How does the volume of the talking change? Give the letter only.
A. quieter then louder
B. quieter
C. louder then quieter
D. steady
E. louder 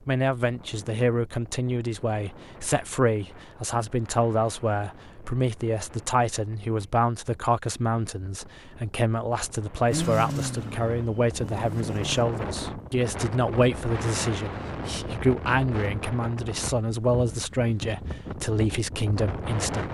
D.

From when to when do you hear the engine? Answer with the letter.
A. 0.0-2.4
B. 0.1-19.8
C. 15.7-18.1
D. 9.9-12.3
D.